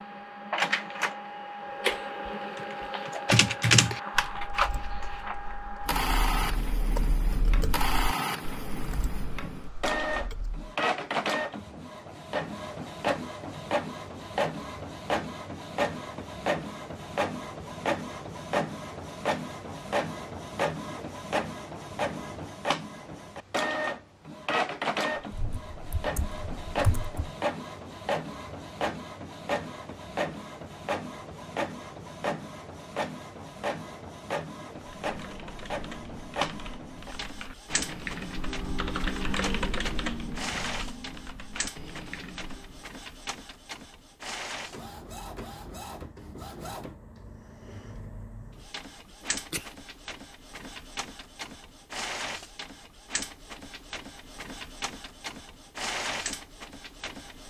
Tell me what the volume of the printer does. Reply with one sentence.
The volume of the printer goes down.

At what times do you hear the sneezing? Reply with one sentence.
You can hear the sneezing from 49.0 to 49.8 s.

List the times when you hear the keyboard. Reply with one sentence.
You can hear the keyboard from 2.5 to 10.7 s, from 25.4 to 27.1 s and from 34.8 to 43.0 s.